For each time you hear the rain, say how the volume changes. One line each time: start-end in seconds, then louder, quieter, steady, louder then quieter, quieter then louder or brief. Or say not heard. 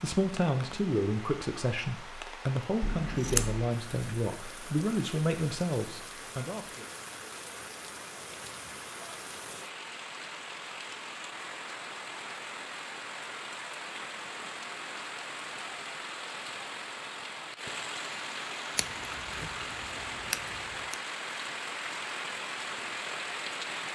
0.0-23.8 louder.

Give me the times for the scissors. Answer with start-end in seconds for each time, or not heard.
2.8-3.7, 18.8-20.9.